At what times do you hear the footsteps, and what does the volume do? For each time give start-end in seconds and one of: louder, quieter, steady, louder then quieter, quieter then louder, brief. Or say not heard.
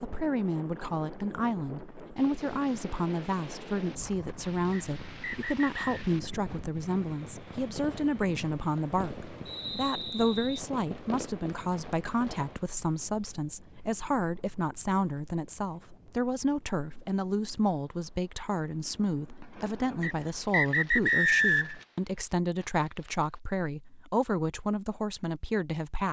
not heard.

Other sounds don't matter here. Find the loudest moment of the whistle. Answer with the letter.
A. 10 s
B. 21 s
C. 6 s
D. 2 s
B.